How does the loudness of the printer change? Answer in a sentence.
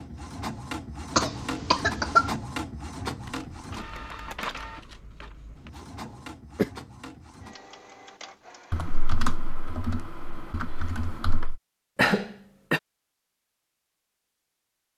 The loudness of the printer goes down.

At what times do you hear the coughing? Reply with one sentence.
You can hear the coughing from 1.1 to 2.4 s, from 5.8 to 6.7 s and from 11.9 to 12.8 s.